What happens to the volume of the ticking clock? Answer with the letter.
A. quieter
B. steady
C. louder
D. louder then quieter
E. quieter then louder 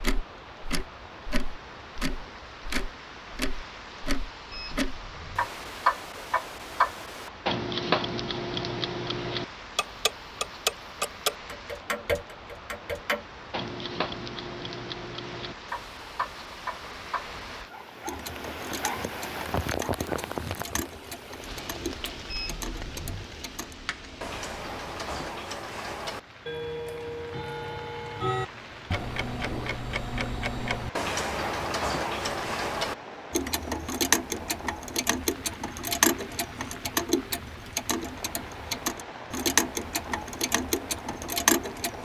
E.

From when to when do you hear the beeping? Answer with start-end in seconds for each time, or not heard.
4.5-5.5, 22.3-23.2.